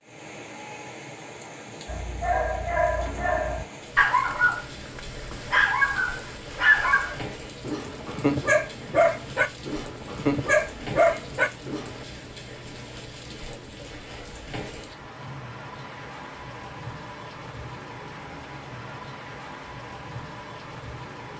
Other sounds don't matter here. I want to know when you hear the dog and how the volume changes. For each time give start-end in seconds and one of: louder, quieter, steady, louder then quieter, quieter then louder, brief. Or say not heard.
1.9-12.0 steady.